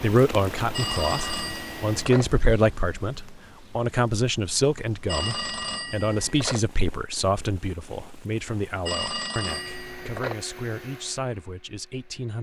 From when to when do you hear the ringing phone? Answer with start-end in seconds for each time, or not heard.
0.7-2.2, 5.0-6.6, 8.8-10.4.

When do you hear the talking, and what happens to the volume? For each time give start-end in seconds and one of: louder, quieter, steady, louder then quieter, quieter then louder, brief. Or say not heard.
0.0-12.3 quieter.